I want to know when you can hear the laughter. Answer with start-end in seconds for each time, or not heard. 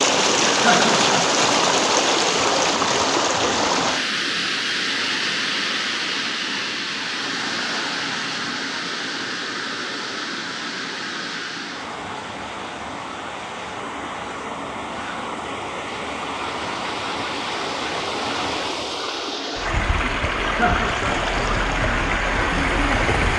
0.5-1.4, 20.4-21.3.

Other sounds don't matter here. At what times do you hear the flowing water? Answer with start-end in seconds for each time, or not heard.
0.0-23.3.